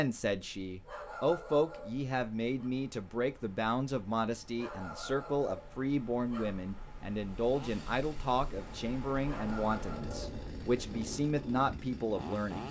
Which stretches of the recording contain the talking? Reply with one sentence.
You can hear the talking from 0.0 to 12.6 s.